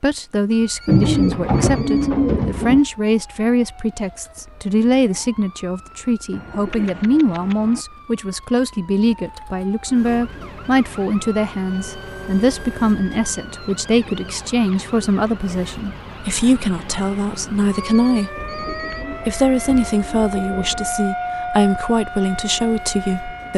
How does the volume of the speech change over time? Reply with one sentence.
The loudness of the speech stays about the same.